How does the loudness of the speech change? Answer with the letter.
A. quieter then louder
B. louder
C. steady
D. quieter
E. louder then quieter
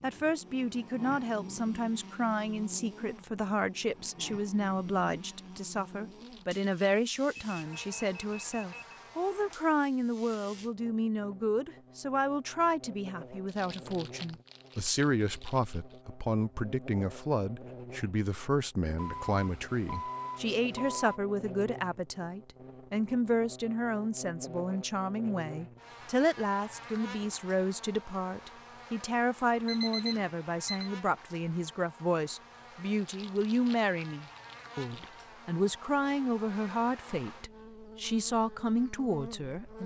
C.